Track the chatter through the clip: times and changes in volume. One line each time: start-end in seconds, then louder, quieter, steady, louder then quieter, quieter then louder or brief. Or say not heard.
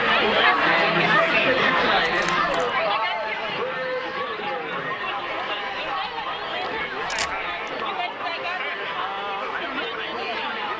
0.0-10.7 quieter.